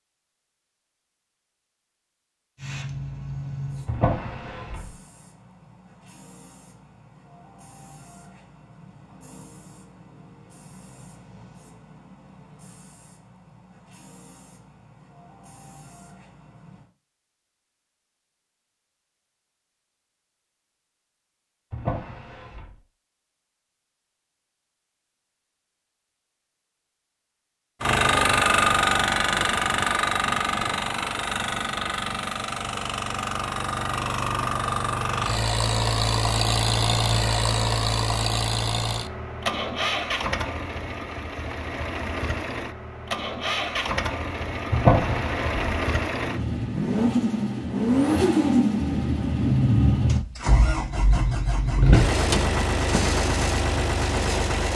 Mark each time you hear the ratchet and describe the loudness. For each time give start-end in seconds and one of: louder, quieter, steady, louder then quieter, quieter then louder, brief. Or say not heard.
not heard.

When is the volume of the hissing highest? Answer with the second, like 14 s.
3 s.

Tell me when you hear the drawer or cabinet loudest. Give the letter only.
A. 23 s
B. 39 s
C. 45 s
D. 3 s
C.